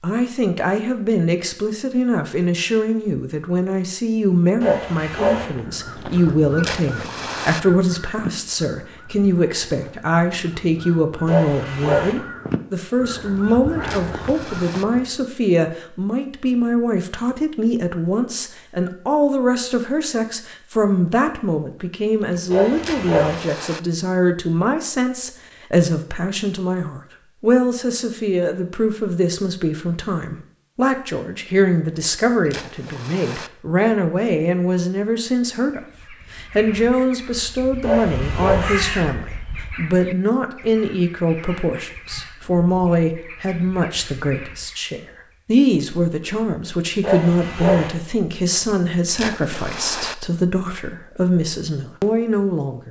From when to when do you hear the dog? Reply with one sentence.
You can hear the dog from 4.6 to 5.5 s, from 11.2 to 12.2 s, from 22.5 to 23.4 s, from 37.8 to 38.7 s and from 47.0 to 47.9 s.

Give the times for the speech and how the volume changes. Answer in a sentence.
The speech can be heard from 0.0 to 52.8 s, at a steady volume.